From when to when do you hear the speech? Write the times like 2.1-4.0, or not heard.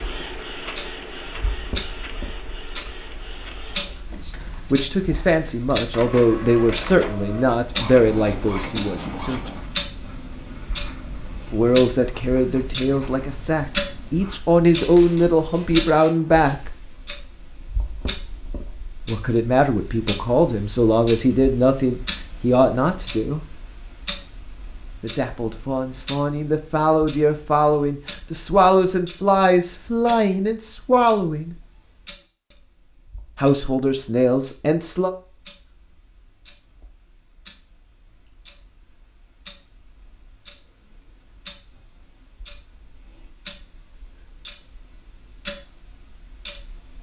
4.2-9.5, 11.5-16.8, 19.1-23.4, 25.0-31.6, 33.4-35.1.